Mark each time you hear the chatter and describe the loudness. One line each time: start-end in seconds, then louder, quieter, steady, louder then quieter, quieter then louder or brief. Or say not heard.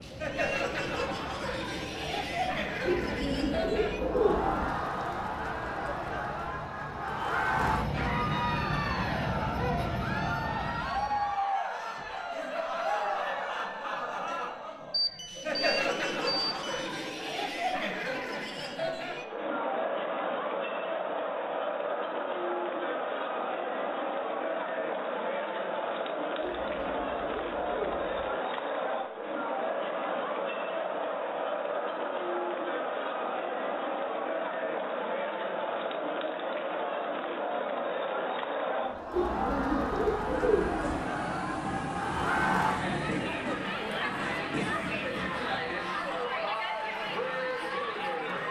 0.0-48.4 steady.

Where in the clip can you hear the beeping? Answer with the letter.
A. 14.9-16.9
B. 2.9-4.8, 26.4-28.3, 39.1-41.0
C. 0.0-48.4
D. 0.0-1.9
A.